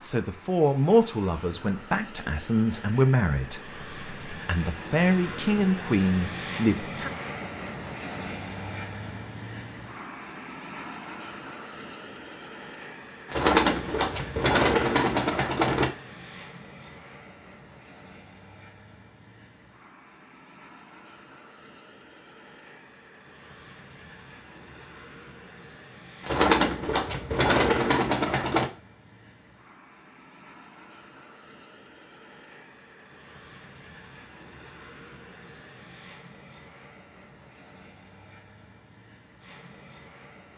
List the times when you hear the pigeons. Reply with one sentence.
The pigeons can be heard from 13.3 to 15.9 s and from 26.2 to 28.7 s.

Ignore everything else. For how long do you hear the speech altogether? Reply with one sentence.
You can hear the speech for 7 seconds altogether.